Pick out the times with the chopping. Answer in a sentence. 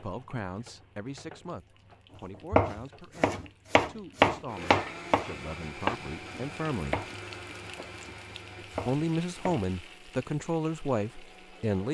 You can hear the chopping from 2.5 to 9.7 s.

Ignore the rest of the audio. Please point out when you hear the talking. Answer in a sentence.
The talking can be heard from 0.0 to 7.0 s and from 8.8 to 11.8 s.